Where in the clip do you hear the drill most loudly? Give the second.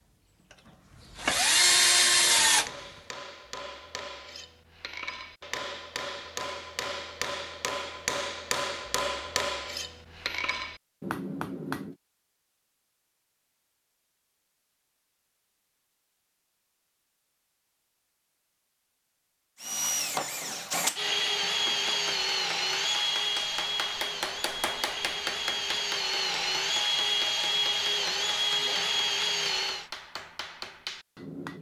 2 s.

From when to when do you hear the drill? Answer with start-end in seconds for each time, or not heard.
0.4-2.7, 19.6-29.9.